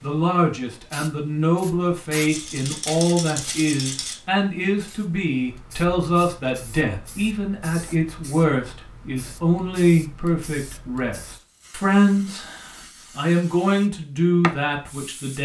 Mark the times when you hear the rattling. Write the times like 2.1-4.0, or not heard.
2.2-4.2.